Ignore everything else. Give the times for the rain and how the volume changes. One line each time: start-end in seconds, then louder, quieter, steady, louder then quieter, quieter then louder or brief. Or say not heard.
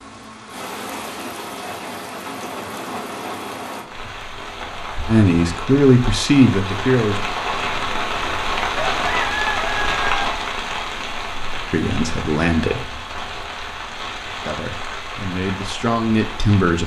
0.0-16.8 louder then quieter.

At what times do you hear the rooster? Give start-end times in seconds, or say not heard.
8.8-10.2.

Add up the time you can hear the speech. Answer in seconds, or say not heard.
6 s.